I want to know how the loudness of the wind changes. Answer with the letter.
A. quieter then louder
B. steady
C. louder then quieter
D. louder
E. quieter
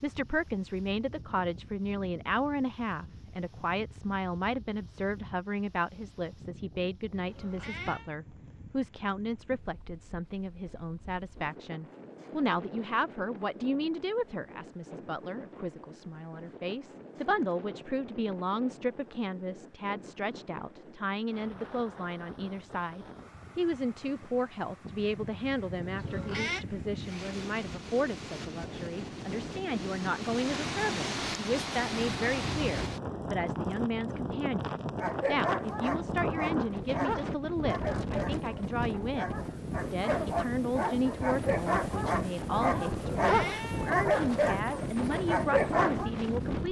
D.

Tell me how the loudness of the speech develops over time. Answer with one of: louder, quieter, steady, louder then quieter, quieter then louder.
steady.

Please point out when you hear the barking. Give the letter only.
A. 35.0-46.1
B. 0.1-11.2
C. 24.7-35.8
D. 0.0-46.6
A.